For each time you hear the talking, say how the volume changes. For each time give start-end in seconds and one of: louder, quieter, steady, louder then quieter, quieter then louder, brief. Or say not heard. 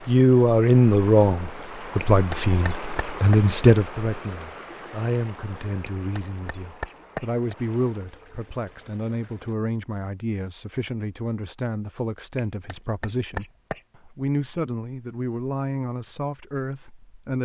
0.1-17.4 quieter.